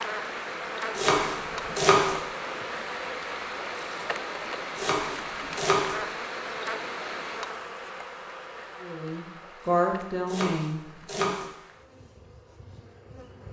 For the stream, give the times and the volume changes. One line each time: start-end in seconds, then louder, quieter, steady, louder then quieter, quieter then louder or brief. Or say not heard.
0.0-7.6 steady.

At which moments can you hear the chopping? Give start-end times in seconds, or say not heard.
0.9-2.1, 4.8-6.0, 10.2-11.5.